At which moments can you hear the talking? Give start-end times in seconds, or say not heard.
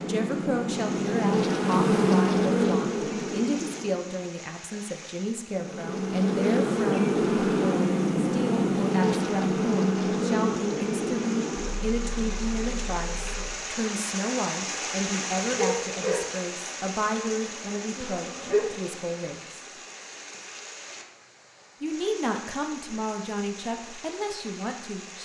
0.0-19.6, 21.8-25.1.